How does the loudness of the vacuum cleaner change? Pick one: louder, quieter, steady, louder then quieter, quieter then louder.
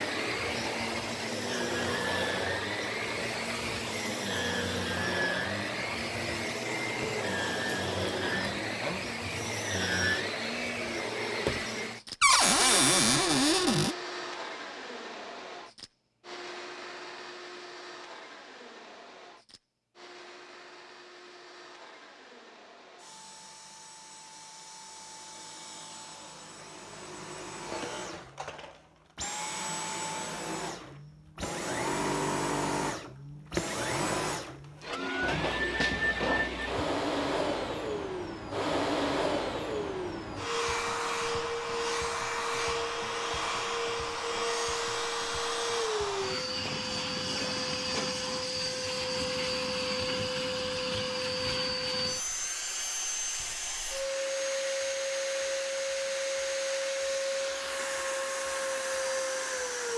quieter then louder.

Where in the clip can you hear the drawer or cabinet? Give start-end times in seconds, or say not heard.
12.2-13.9, 35.2-36.9.